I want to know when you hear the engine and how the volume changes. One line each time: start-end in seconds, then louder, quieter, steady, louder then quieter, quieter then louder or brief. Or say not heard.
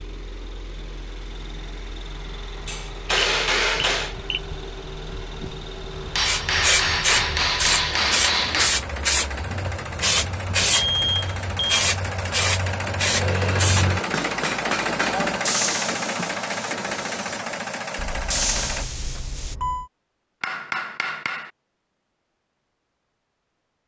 0.0-18.9 louder.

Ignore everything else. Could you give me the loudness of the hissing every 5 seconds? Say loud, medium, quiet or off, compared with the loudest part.
off, loud, loud, medium, off.